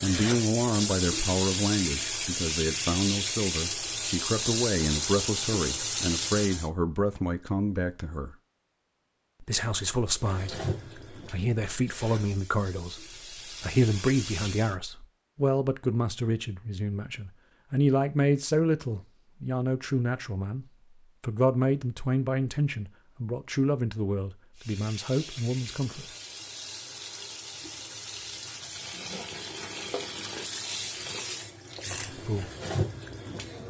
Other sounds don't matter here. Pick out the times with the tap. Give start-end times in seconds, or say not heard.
0.0-6.7, 10.1-14.8, 24.6-33.6.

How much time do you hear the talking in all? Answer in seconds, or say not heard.
26 s.